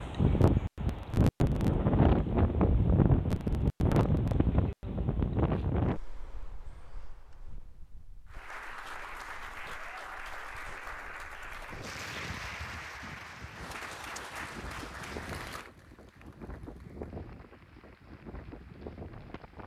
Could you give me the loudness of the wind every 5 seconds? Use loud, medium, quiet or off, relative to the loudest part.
loud, medium, quiet, quiet.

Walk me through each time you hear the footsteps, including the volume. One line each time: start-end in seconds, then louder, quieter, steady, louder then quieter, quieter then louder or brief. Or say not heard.
not heard.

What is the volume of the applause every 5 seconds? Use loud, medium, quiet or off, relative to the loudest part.
off, loud, loud, medium.